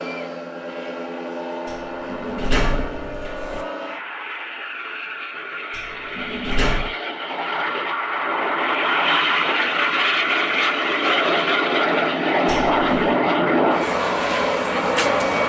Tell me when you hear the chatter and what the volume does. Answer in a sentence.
The chatter can't be heard in this clip.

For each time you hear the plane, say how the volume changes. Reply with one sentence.
The plane can be heard from 0.0 to 15.4 s, getting louder.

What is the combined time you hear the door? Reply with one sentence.
You can hear the door for 4 seconds altogether.